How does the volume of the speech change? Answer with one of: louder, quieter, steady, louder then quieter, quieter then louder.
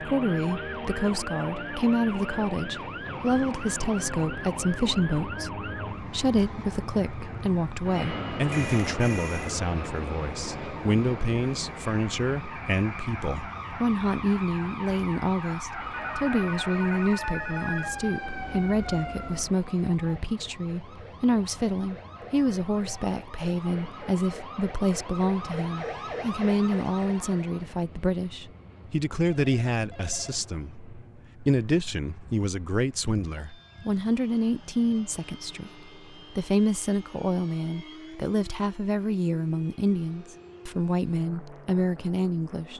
steady.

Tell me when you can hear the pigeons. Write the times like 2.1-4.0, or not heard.
not heard.